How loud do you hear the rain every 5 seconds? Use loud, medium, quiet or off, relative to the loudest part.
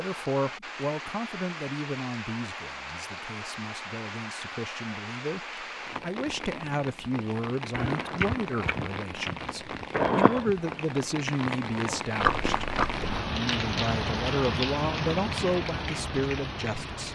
medium, medium, loud, loud.